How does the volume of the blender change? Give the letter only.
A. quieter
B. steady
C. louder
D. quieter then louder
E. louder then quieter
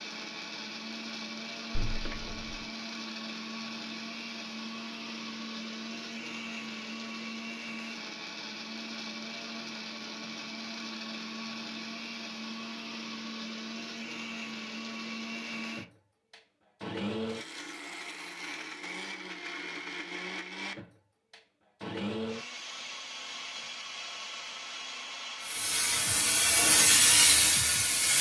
B.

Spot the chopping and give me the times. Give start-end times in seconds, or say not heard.
not heard.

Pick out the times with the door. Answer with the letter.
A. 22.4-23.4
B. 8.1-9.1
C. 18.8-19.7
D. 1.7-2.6
D.